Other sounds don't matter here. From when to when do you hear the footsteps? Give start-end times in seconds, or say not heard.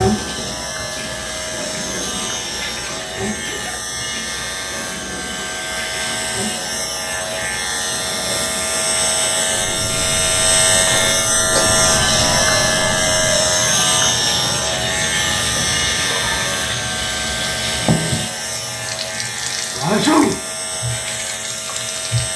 not heard.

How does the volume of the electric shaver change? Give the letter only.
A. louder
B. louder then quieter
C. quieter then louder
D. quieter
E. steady
B.